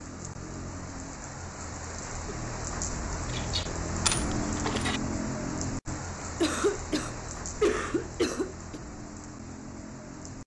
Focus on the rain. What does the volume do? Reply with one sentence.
The loudness of the rain goes up, then down.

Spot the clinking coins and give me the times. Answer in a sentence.
The clinking coins can be heard from 3.2 to 5.0 s.